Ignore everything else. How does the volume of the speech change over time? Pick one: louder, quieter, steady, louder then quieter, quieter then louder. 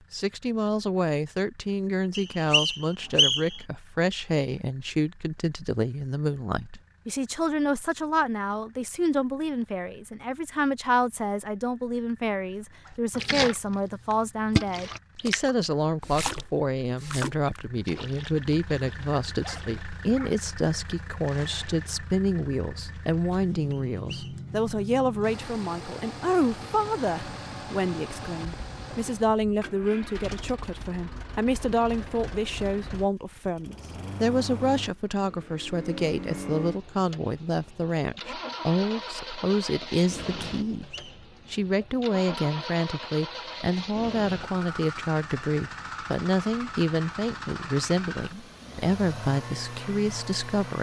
steady.